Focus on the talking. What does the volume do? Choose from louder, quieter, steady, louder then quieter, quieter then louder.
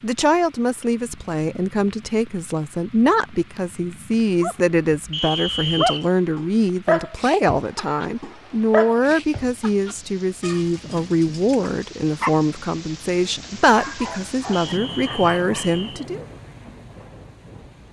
steady.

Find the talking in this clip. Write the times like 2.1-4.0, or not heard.
0.0-16.2.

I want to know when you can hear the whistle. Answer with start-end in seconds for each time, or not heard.
5.1-6.1, 14.5-16.1.